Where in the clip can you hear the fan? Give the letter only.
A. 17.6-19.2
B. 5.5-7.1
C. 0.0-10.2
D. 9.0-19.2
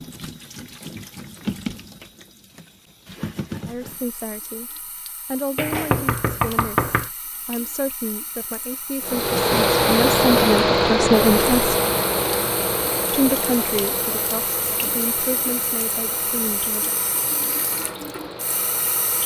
D.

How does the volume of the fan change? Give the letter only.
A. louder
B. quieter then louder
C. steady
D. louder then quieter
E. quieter
E.